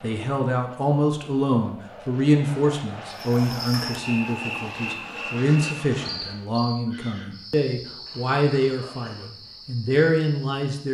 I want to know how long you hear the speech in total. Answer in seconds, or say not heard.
11 s.